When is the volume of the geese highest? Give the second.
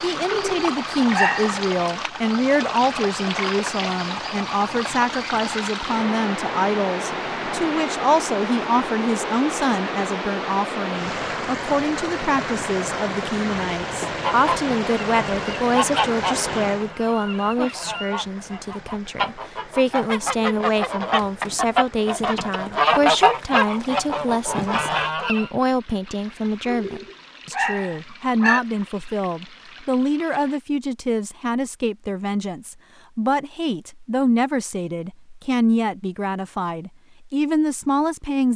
23 s.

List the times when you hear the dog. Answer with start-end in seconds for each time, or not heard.
0.2-1.6, 26.6-28.6.